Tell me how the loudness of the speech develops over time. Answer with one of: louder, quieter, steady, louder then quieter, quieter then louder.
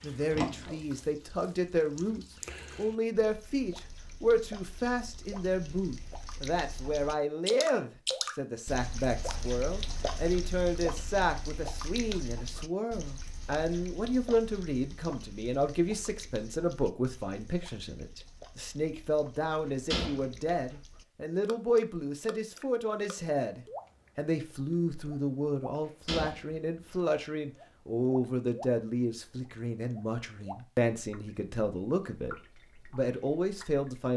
steady.